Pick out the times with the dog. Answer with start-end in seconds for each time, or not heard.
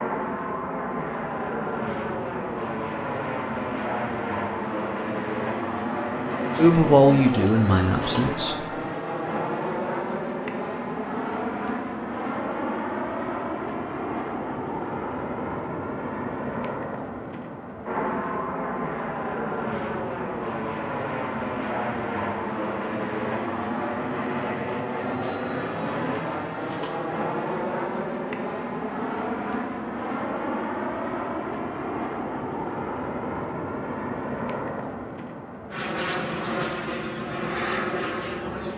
not heard.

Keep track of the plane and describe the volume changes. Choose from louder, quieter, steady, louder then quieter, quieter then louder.
steady.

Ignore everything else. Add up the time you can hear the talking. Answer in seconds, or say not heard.
2 s.